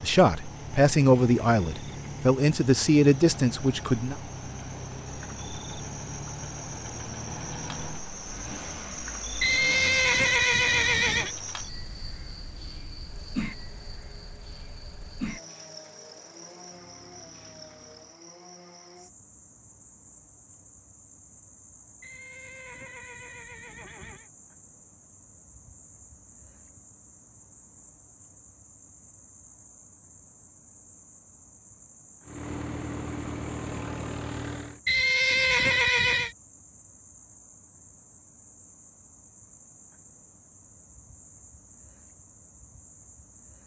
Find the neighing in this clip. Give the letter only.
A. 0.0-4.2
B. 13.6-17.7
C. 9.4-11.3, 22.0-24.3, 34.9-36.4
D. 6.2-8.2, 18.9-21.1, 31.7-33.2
C.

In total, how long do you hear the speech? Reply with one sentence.
The speech can be heard for 4 seconds in total.